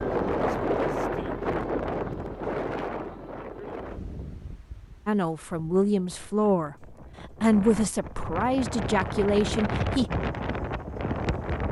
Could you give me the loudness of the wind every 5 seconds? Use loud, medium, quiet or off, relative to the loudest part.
loud, medium, loud.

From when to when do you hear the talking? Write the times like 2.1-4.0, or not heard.
5.0-10.1.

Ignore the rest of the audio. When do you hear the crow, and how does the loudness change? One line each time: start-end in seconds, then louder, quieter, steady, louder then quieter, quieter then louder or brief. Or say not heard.
not heard.